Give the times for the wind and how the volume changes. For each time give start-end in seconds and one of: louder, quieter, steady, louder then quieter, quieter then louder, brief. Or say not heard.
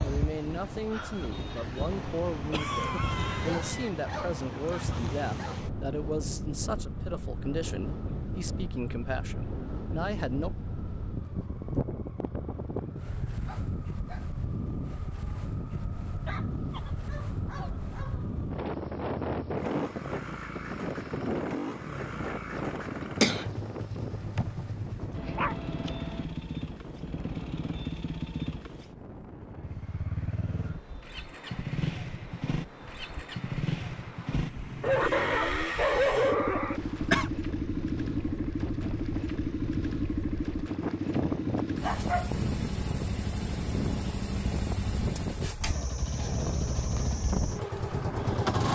0.0-48.6 quieter then louder.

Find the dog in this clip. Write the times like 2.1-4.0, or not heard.
3.4-5.6, 13.4-14.3, 16.2-18.1, 25.1-26.2, 34.8-36.8, 41.8-42.3.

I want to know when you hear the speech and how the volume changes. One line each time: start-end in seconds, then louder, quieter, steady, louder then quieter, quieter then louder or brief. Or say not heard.
0.0-10.5 steady.